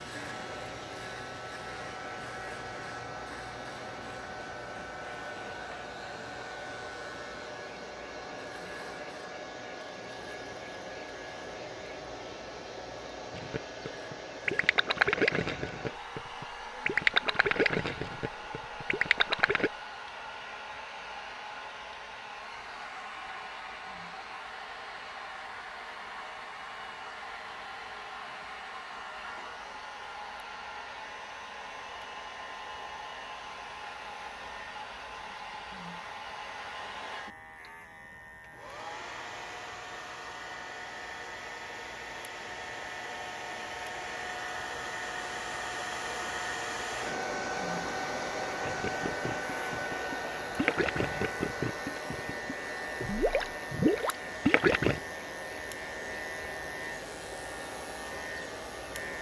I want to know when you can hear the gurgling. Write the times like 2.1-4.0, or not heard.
13.3-19.7, 48.6-55.0.